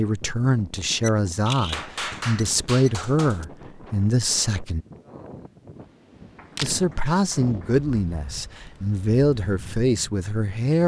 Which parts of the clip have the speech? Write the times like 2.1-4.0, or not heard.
0.0-4.8, 6.6-10.8.